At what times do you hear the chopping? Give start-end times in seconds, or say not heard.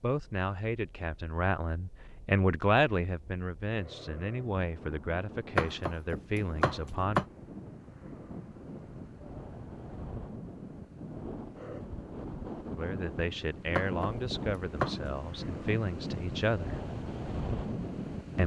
5.5-7.2, 13.8-14.9.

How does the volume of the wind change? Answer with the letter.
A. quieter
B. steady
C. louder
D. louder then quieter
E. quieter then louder
C.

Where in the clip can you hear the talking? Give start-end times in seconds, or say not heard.
0.0-7.2, 12.8-16.8.